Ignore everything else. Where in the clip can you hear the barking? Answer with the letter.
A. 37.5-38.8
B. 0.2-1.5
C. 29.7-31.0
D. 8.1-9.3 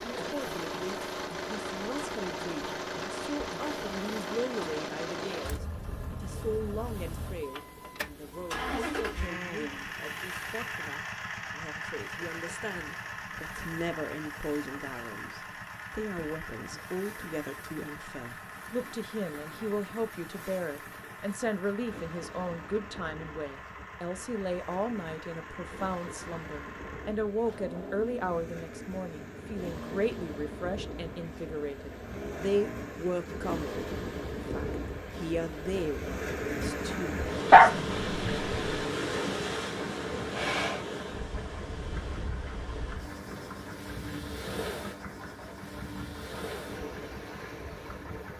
A.